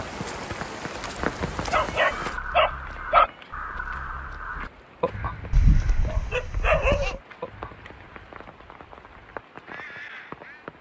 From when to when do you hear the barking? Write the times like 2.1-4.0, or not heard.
1.7-3.3, 5.5-7.2.